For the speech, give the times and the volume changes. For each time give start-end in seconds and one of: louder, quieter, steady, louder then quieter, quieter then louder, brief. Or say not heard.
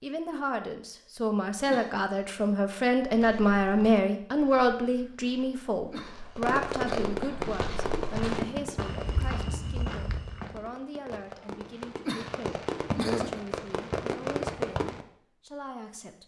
0.0-16.2 quieter.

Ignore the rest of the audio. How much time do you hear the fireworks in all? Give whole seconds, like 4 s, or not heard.
9 s.